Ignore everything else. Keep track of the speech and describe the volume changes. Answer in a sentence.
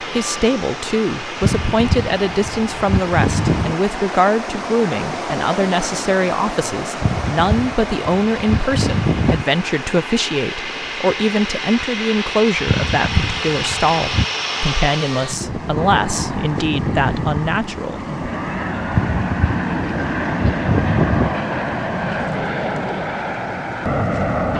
The loudness of the speech stays about the same.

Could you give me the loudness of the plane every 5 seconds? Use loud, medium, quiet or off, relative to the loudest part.
medium, medium, loud, loud, loud.